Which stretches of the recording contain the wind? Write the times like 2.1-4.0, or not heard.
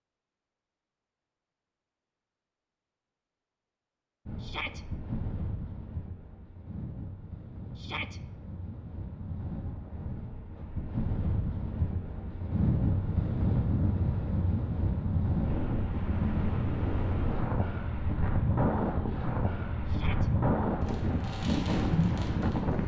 4.2-22.8.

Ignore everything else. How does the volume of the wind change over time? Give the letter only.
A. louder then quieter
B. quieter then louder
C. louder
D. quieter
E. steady
C.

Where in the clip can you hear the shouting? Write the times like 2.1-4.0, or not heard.
4.4-4.8, 7.8-8.2, 19.9-20.3.